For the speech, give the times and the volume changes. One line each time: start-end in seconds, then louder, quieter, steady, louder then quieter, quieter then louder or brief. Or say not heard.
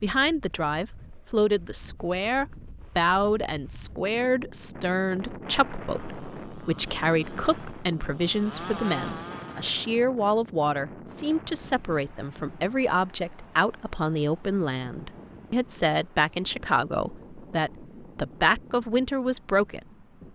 0.0-19.9 steady.